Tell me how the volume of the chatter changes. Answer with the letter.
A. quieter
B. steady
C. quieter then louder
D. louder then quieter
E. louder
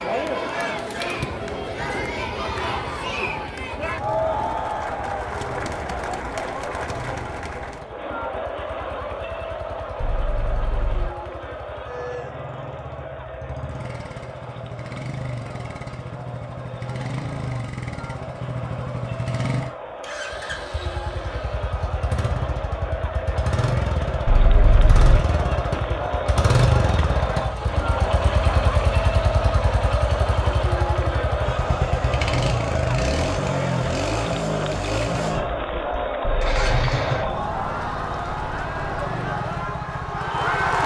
C.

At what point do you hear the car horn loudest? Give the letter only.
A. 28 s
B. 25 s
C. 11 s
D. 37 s
B.